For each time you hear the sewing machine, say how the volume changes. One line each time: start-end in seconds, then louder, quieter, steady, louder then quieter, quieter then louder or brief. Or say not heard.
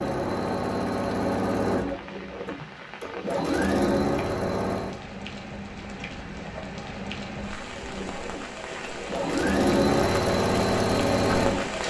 0.0-5.0 quieter then louder
7.8-11.8 louder.